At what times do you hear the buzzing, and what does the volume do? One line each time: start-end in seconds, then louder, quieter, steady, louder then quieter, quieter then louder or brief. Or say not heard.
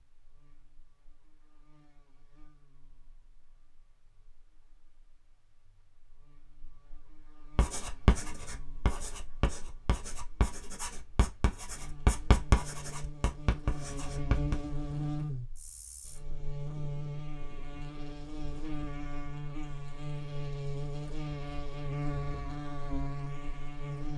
0.0-24.1 louder.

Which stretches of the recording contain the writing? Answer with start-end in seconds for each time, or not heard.
7.5-14.6.